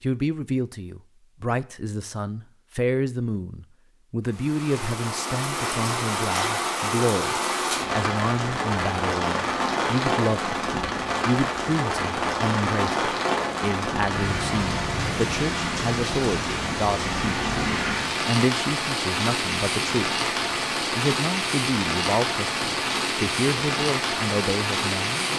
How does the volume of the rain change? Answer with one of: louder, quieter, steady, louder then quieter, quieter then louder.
steady.